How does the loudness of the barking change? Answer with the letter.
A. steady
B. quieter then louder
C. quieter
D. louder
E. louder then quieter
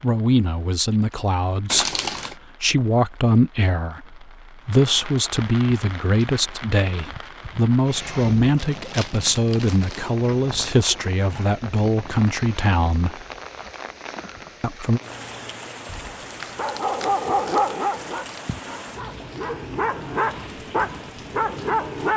B.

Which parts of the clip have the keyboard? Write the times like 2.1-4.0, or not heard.
not heard.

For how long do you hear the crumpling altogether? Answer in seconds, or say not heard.
5 s.